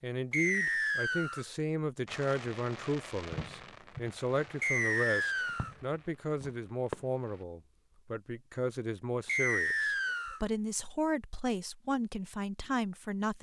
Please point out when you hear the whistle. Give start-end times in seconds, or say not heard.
0.3-1.4, 4.6-5.8, 9.2-10.4.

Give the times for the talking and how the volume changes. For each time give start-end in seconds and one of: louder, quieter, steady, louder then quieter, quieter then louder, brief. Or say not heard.
0.0-13.3 steady.